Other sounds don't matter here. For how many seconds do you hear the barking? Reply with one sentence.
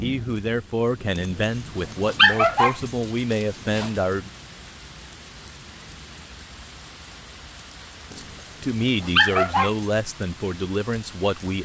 The barking can be heard for 5 seconds in total.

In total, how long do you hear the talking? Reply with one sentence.
The talking can be heard for 8 seconds in total.